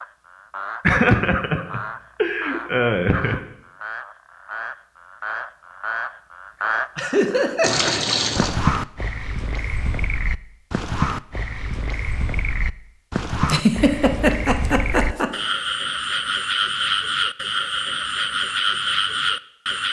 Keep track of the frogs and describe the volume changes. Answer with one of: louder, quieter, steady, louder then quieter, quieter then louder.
louder.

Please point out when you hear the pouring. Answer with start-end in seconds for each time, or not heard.
7.6-8.6.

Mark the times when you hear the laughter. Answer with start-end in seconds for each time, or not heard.
0.8-3.4, 7.0-8.0, 13.4-15.3.